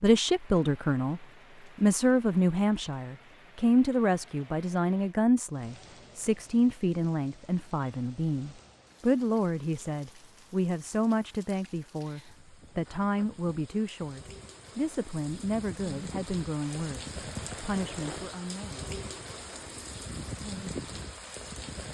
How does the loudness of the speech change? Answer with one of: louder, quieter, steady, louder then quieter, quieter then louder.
quieter.